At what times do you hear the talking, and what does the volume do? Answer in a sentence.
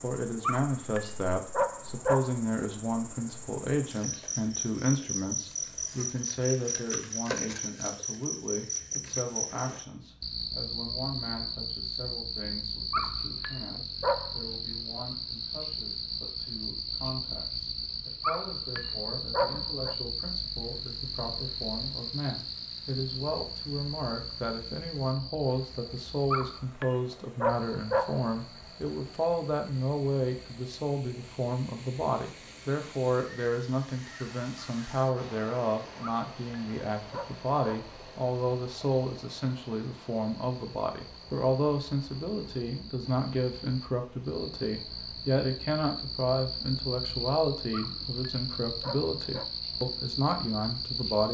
The talking can be heard from 0.0 to 51.2 s, getting quieter then louder.